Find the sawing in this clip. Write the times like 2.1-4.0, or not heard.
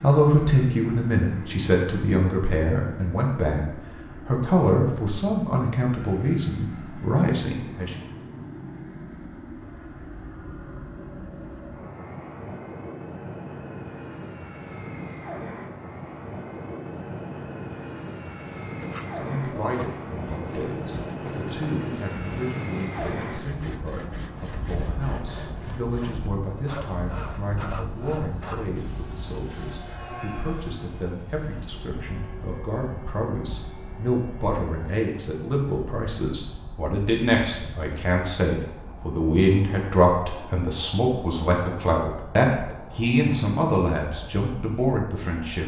18.8-30.0.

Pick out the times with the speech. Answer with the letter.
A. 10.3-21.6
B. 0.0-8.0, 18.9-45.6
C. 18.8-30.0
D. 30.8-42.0
B.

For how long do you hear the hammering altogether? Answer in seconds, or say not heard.
not heard.